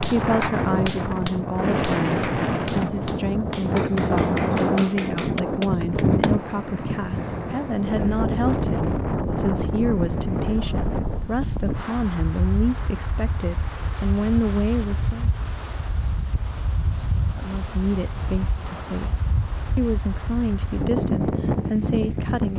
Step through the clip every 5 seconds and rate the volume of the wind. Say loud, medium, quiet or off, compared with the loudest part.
loud, loud, medium, medium, loud.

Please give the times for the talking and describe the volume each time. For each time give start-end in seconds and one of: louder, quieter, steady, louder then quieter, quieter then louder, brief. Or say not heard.
0.0-15.3 steady
17.4-22.5 quieter then louder.